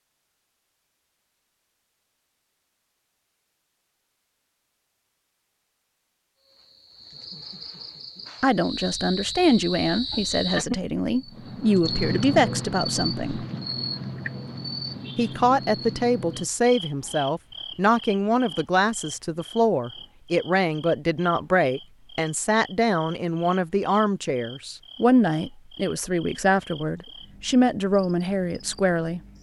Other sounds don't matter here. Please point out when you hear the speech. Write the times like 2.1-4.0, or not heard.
8.4-13.4, 15.2-29.2.